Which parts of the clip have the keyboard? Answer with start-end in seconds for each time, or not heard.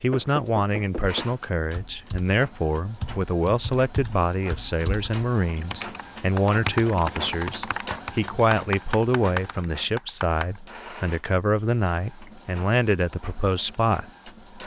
1.6-10.6.